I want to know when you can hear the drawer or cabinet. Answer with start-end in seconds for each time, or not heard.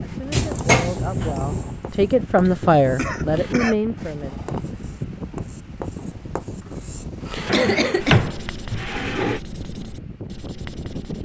0.3-1.8, 7.5-9.4.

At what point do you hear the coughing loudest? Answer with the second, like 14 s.
8 s.